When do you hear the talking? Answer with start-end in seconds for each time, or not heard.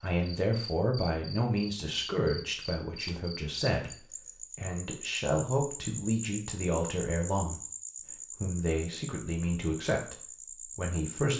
0.0-7.6, 8.4-11.3.